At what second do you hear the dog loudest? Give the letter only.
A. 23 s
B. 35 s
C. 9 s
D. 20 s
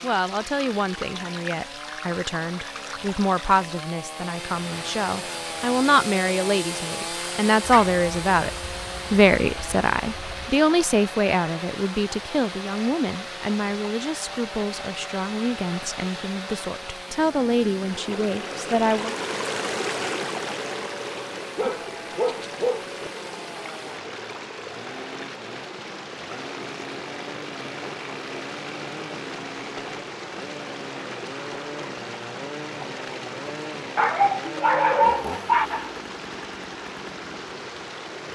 B.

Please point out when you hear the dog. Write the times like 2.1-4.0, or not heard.
7.7-10.5, 21.6-23.1, 34.0-36.0.